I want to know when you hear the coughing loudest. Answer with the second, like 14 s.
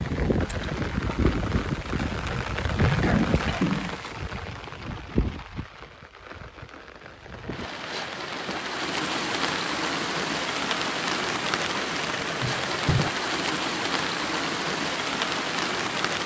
3 s.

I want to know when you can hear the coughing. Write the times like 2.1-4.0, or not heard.
2.2-4.4, 12.2-13.1.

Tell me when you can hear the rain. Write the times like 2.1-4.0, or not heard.
0.0-16.2.